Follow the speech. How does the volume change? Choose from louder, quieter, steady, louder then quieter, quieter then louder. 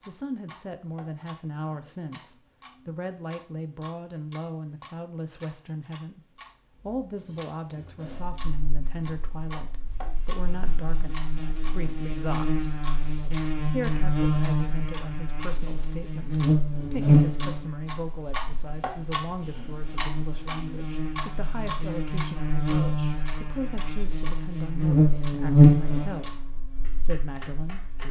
steady.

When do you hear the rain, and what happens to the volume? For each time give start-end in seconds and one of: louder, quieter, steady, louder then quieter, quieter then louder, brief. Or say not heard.
not heard.